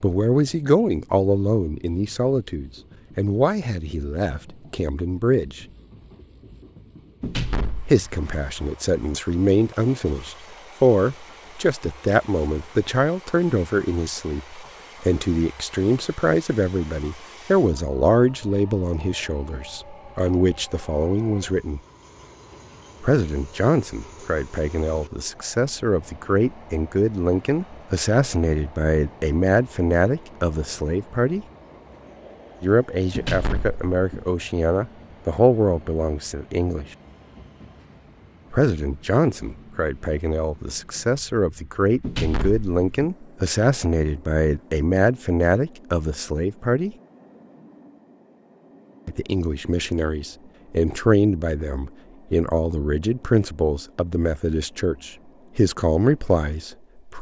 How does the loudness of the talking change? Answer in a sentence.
The loudness of the talking stays about the same.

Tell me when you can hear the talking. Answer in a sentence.
You can hear the talking from 0.0 to 5.7 s, from 7.8 to 21.8 s, from 23.0 to 31.4 s, from 32.6 to 36.9 s, from 38.5 to 47.0 s and from 49.0 to 57.1 s.